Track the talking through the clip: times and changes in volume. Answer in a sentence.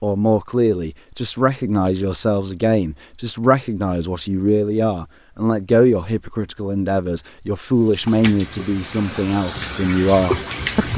You can hear the talking from 0.0 to 10.9 s, at a steady volume.